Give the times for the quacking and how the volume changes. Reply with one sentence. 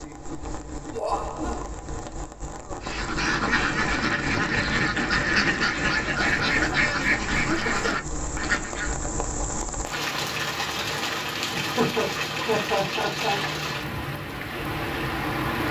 The quacking can be heard from 2.8 to 9.0 s, at a steady volume.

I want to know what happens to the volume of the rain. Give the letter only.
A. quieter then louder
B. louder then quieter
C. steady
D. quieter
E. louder
E.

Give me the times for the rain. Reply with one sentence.
The rain can be heard from 0.0 to 15.6 s.